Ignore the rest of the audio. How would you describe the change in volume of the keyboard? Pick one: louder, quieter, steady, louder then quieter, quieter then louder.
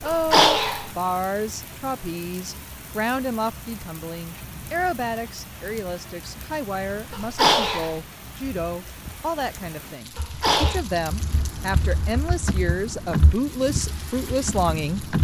louder then quieter.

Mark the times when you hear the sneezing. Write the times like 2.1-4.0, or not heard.
0.1-0.9, 7.1-8.0, 10.2-10.8.